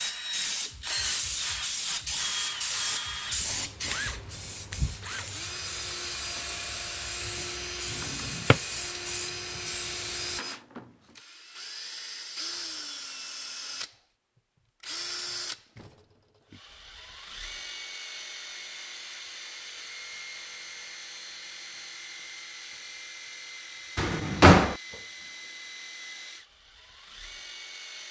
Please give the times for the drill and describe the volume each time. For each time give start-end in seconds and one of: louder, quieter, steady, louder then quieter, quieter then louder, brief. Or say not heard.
0.0-28.0 quieter.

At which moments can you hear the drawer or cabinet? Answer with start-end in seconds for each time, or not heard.
7.9-8.6, 23.9-24.8.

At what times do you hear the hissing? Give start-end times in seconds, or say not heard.
0.0-10.4.